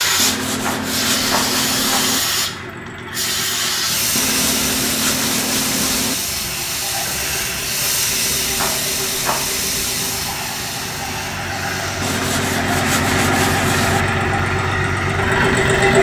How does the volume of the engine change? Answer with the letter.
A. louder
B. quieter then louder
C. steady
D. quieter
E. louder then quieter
A.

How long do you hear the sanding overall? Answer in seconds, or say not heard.
8 s.